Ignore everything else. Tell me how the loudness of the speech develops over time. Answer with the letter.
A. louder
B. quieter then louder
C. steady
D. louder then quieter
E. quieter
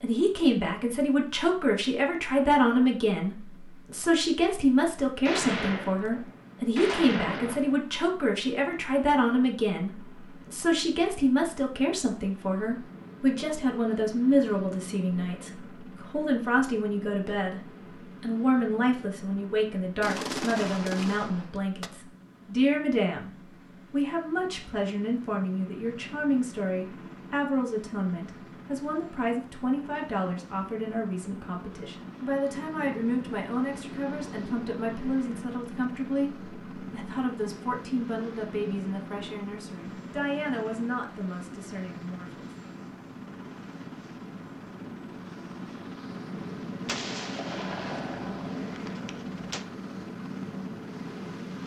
E.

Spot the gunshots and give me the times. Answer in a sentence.
You can hear the gunshots from 5.2 to 7.8 s, from 20.0 to 21.9 s and from 46.9 to 49.6 s.